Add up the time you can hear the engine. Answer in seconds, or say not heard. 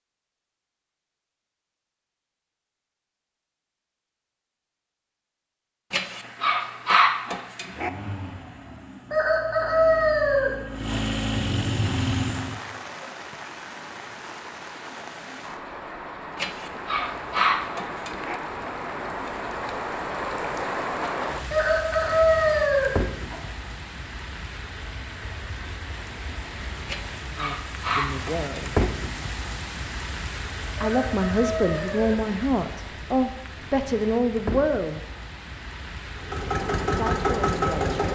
7 s.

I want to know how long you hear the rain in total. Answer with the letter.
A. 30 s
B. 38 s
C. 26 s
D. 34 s
C.